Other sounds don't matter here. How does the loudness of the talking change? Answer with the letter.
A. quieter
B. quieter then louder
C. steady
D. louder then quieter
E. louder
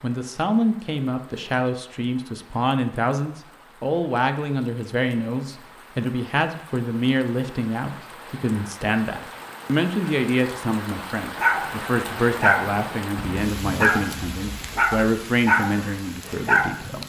C.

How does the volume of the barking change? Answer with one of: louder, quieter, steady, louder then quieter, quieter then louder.
quieter then louder.